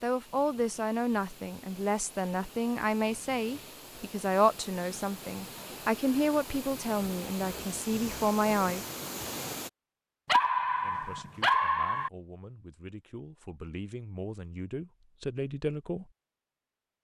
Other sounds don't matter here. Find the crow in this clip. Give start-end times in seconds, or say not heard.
not heard.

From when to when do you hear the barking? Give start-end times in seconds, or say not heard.
10.2-12.1.